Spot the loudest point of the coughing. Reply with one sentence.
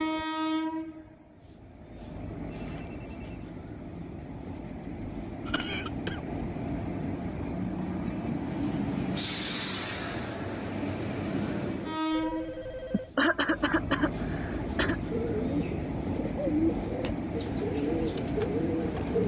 The loudest moment of the coughing is at 13 seconds.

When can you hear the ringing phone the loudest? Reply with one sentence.
The volume of the ringing phone peaks at 13 seconds.